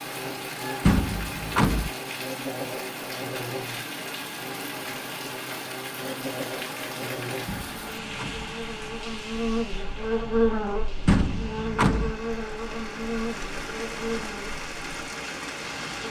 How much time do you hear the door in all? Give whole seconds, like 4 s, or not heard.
3 s.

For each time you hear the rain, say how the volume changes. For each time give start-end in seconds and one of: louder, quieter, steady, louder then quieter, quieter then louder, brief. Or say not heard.
0.0-16.0 quieter then louder.